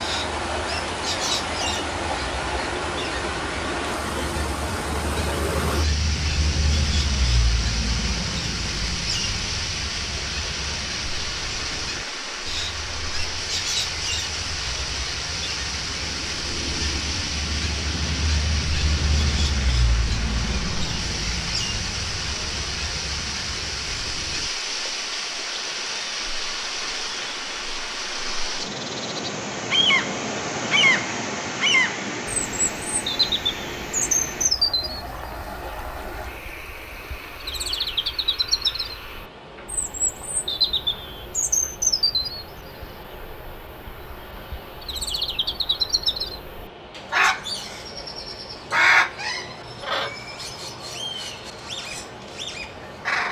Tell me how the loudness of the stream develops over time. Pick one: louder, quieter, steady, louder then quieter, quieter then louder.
quieter.